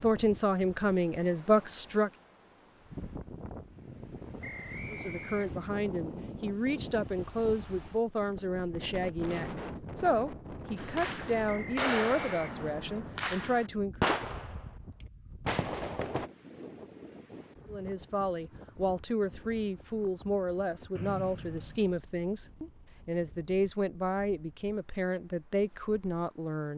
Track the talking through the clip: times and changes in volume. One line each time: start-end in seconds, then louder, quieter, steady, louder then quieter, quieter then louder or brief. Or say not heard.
0.0-2.1 brief
4.9-14.1 steady
17.7-26.7 steady.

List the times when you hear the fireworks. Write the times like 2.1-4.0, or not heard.
10.8-16.3.